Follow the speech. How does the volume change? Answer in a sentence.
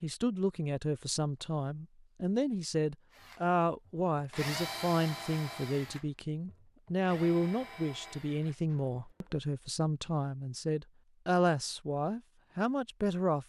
The volume of the speech stays about the same.